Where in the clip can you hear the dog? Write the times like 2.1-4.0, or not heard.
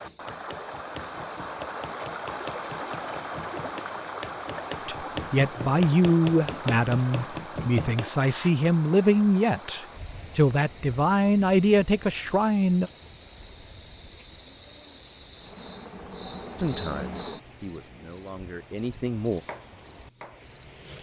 not heard.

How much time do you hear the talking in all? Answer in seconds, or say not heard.
11 s.